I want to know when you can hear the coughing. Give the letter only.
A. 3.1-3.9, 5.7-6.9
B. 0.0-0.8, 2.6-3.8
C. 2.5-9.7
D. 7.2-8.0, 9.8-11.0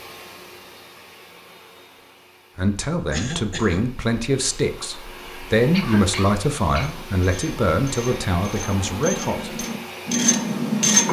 A.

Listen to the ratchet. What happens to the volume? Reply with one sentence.
The loudness of the ratchet goes up.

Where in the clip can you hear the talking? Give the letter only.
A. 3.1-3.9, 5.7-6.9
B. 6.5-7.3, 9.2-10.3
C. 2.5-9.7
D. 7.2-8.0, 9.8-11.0
C.